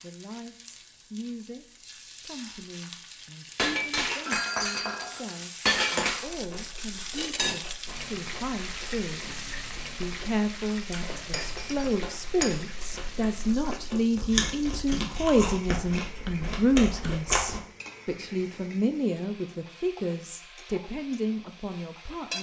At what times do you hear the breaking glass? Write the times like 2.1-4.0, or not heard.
3.5-6.2, 11.3-12.6.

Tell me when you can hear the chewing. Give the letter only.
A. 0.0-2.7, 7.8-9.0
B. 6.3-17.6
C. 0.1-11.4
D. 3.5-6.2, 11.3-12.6
B.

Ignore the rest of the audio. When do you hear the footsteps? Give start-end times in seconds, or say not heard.
not heard.